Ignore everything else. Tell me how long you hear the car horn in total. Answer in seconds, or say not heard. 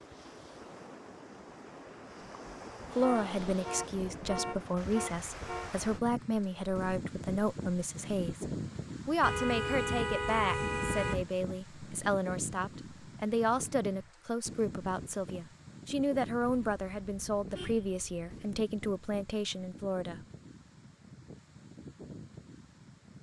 7 s.